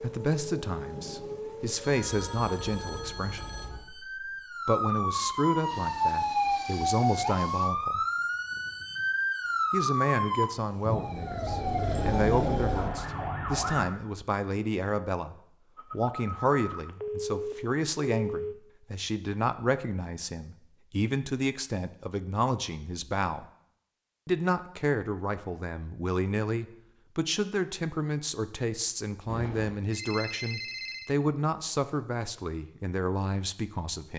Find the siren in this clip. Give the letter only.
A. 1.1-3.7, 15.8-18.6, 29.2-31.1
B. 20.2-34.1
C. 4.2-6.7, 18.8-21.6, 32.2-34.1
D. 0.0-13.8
D.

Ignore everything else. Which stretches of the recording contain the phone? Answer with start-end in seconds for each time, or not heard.
1.1-3.7, 15.8-18.6, 29.2-31.1.